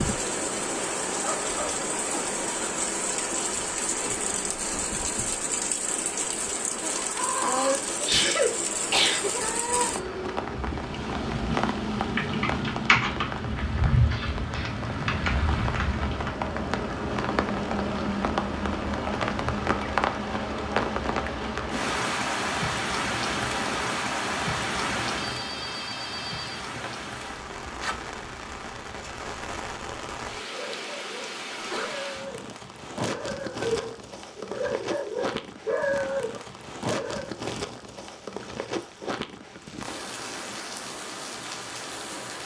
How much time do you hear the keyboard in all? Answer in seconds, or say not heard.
4 s.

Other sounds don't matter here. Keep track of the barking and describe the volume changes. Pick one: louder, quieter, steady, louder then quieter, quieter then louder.
louder.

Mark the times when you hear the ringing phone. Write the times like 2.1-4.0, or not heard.
25.1-26.9.